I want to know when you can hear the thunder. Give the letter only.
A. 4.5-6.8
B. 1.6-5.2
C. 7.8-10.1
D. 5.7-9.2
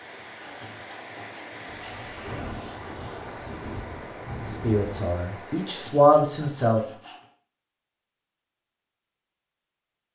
B.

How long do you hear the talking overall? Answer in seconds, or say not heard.
2 s.